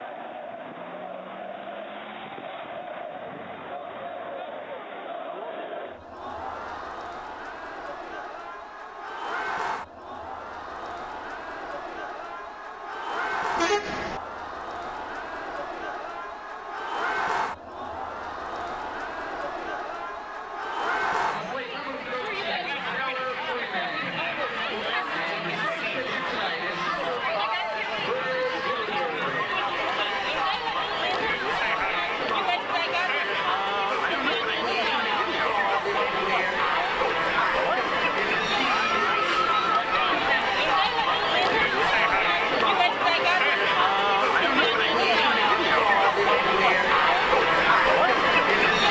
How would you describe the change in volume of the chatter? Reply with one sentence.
The loudness of the chatter goes up.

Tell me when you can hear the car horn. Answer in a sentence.
The car horn can be heard from 13.6 to 14.2 s.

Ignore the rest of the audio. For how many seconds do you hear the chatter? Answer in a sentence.
You can hear the chatter for 49 seconds altogether.